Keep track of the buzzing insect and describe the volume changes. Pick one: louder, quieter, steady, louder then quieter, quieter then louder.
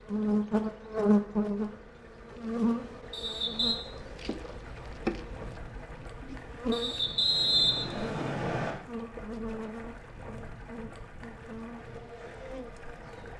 quieter.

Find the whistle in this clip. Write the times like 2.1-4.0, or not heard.
3.1-3.8, 6.7-8.8.